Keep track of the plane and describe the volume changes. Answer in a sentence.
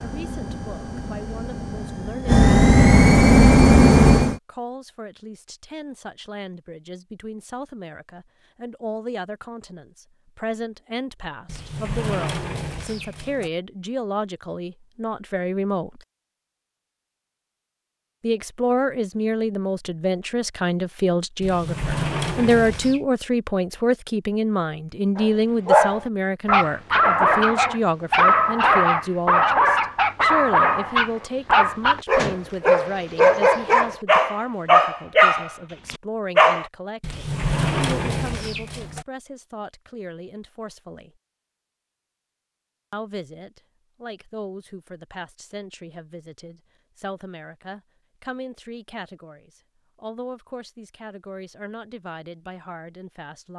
The loudness of the plane goes up.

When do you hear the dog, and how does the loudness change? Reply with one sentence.
The dog can be heard from 25.1 to 36.6 s, at a steady volume.